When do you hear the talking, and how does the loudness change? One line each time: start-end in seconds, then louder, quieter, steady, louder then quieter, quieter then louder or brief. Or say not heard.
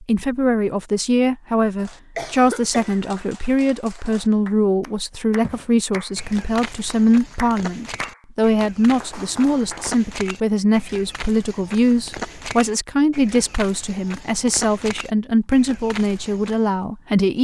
0.0-17.3 steady.